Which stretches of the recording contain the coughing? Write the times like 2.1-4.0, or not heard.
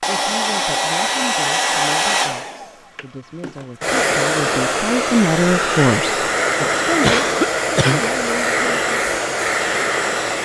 7.0-8.2.